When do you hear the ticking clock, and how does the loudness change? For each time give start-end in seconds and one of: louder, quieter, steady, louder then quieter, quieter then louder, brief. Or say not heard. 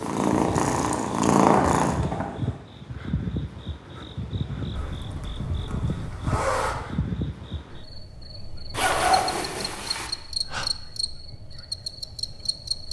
not heard.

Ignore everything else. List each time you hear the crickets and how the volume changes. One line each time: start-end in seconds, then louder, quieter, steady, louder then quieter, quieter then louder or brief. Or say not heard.
0.2-12.8 quieter then louder.